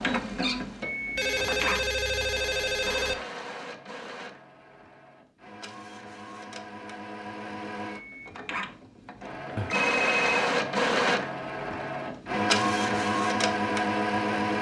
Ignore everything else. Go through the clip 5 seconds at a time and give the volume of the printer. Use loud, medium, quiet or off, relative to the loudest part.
medium, medium, loud.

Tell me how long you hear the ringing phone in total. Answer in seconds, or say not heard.
3 s.